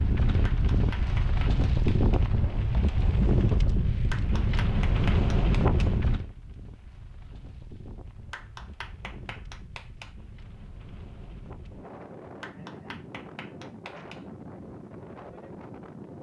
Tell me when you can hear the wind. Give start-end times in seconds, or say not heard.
0.0-16.1.